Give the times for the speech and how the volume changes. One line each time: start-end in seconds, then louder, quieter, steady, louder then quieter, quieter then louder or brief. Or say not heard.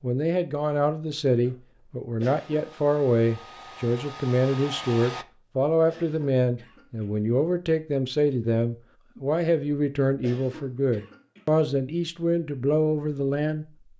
0.0-13.7 steady.